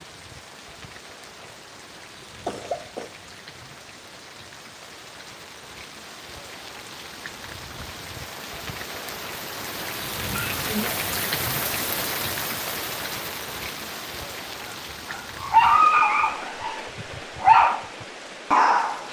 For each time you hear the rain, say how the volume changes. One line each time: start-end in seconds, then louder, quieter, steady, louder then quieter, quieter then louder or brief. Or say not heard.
0.0-19.0 louder then quieter.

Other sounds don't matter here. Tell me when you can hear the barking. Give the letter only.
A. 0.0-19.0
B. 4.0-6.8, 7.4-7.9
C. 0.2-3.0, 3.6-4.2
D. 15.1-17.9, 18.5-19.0
D.